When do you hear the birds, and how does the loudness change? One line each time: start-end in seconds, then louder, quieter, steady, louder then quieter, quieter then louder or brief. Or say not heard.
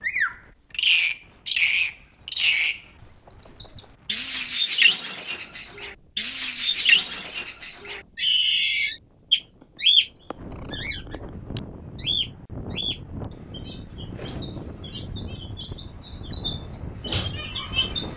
0.0-18.1 quieter.